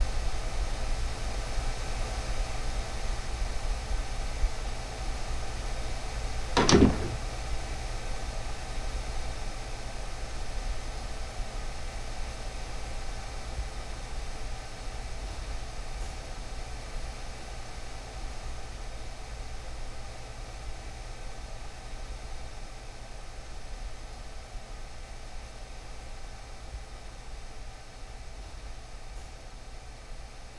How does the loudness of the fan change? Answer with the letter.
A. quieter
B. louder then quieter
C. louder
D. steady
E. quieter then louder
A.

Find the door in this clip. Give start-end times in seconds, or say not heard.
6.5-7.2.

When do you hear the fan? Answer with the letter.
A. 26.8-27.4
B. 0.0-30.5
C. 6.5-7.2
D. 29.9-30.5
B.